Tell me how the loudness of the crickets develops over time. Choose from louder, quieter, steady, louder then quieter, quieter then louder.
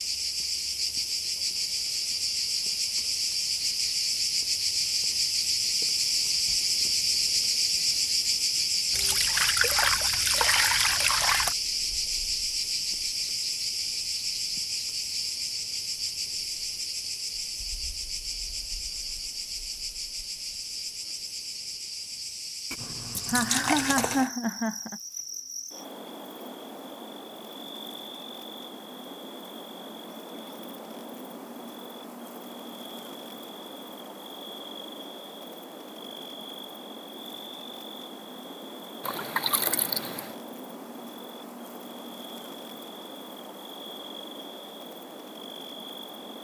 quieter.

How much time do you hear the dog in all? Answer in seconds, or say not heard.
not heard.